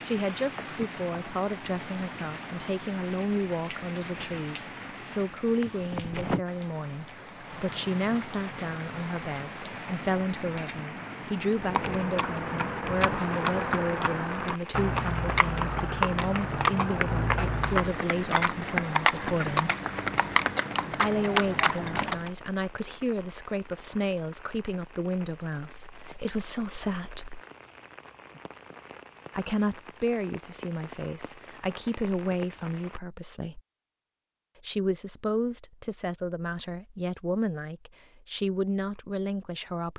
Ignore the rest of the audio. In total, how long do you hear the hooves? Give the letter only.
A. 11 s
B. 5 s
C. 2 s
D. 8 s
A.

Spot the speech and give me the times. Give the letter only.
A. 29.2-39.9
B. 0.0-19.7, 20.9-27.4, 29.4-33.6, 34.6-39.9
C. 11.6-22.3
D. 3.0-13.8
B.